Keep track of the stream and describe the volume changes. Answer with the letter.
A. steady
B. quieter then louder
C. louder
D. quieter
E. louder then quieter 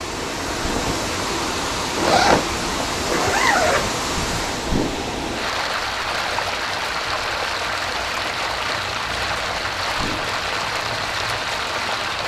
A.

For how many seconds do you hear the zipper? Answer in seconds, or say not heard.
2 s.